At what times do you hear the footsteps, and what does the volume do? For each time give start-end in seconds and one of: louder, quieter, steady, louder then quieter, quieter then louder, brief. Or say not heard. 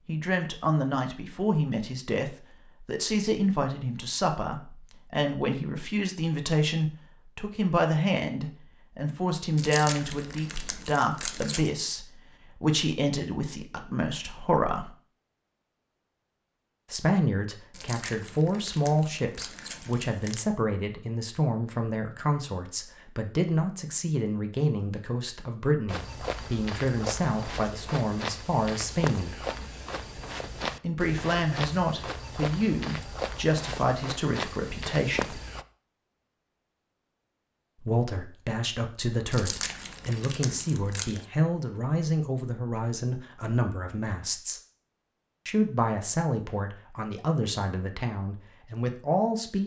25.9-35.6 steady.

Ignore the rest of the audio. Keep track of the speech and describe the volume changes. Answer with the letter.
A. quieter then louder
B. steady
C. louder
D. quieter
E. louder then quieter
B.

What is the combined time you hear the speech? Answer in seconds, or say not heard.
43 s.